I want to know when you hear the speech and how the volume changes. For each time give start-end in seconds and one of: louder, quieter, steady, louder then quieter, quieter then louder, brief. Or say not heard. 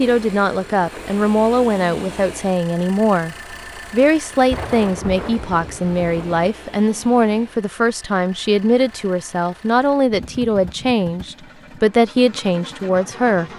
0.0-13.5 steady.